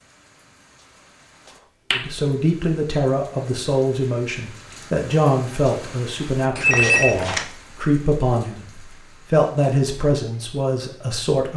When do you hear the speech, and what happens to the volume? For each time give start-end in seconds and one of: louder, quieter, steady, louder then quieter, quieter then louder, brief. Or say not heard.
1.9-11.5 steady.